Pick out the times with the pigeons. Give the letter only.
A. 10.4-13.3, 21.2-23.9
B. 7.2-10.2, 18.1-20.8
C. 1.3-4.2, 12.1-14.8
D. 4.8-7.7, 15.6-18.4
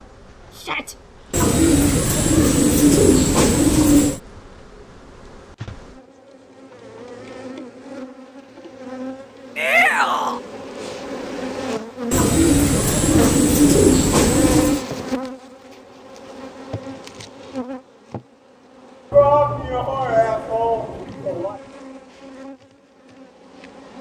C.